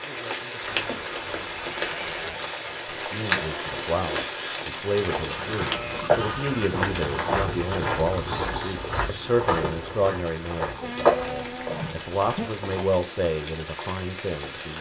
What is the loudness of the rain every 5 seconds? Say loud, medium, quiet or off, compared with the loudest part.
loud, medium, medium.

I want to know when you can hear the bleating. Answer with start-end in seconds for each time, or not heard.
0.6-2.4, 5.2-7.3, 10.8-12.5.